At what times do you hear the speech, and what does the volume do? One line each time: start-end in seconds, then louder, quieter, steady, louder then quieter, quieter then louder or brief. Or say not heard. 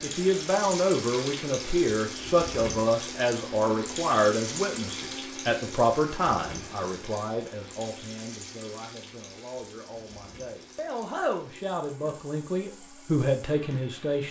0.0-14.2 quieter then louder.